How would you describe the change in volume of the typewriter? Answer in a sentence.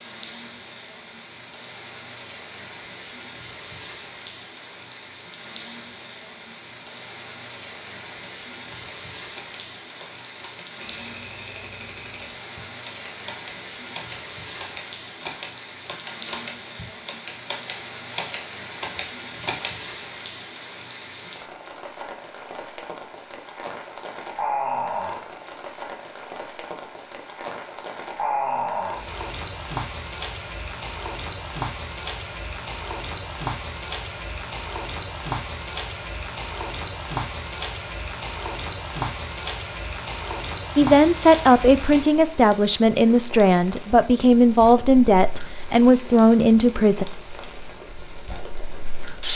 The volume of the typewriter goes up.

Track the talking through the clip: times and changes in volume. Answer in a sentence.
The talking can be heard from 40.8 to 47.0 s, at a steady volume.